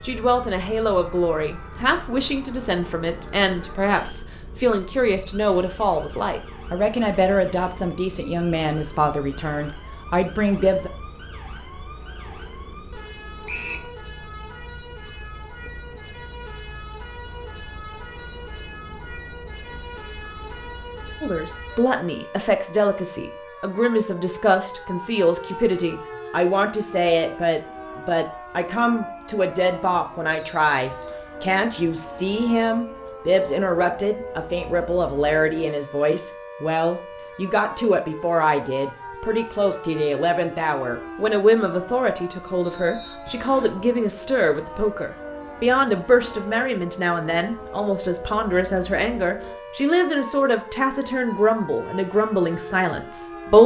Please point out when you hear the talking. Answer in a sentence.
You can hear the talking from 0.0 to 10.9 s and from 21.2 to 53.6 s.